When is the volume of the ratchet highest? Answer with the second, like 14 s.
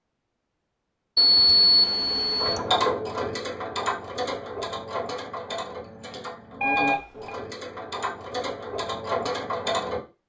3 s.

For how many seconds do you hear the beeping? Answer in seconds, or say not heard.
2 s.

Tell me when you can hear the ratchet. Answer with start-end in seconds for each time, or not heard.
2.4-10.0.